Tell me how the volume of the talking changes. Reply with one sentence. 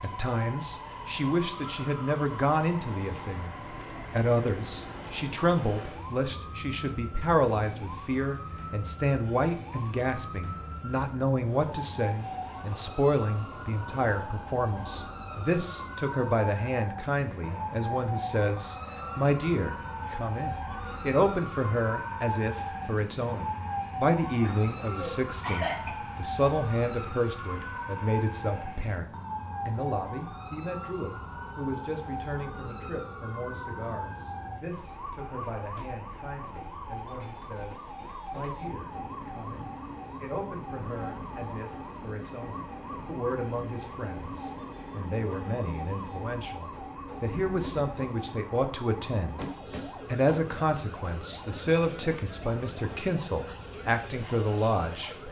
The volume of the talking goes down, then up.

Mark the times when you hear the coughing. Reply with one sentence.
You can hear the coughing from 24.4 to 25.9 s.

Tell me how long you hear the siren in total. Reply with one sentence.
The siren can be heard for 55 seconds in total.